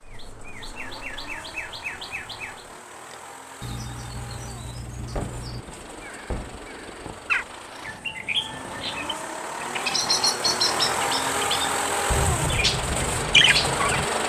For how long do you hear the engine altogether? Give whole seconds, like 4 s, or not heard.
14 s.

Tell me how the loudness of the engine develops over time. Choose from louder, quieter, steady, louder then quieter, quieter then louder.
louder.